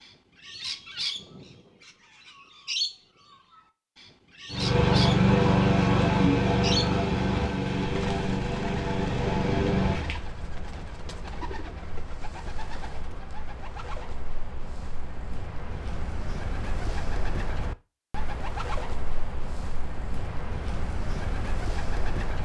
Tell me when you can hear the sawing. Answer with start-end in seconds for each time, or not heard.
not heard.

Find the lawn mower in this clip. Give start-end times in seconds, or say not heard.
4.5-10.2.